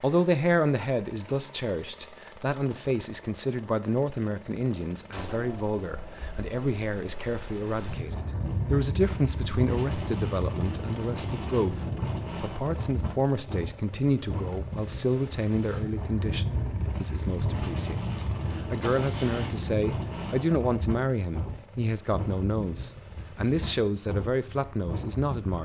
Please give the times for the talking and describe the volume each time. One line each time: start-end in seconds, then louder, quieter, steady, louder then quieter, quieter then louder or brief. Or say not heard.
0.0-25.6 steady.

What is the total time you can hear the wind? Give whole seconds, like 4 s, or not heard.
20 s.